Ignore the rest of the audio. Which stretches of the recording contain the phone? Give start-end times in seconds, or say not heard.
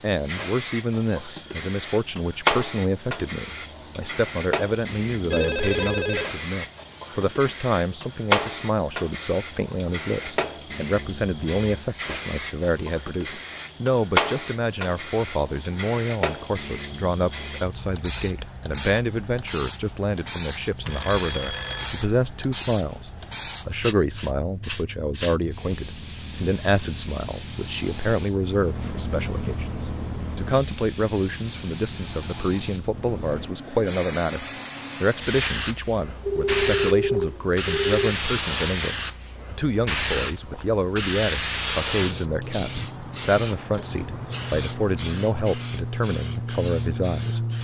5.3-6.3, 20.9-22.1, 36.2-38.1.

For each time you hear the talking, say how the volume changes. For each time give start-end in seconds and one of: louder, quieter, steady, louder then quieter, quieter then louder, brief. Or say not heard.
0.0-47.5 steady.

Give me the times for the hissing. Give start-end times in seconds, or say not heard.
0.0-47.5.